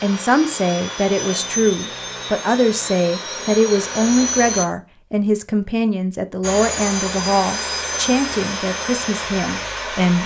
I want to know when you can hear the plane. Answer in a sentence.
You can hear the plane from 0.0 to 4.7 s and from 6.4 to 10.2 s.